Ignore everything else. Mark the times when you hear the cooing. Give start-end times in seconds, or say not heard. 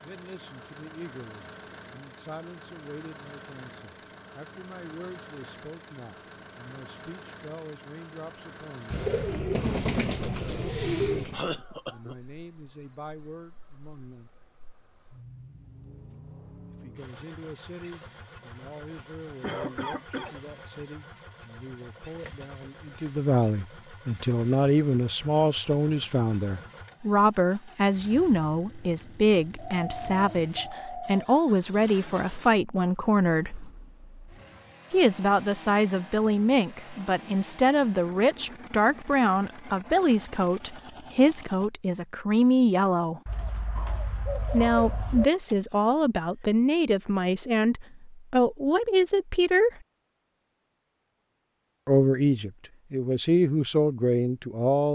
8.9-11.4, 29.6-31.2, 43.2-45.2.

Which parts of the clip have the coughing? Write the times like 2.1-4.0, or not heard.
10.4-12.2, 19.4-20.4, 45.5-46.5.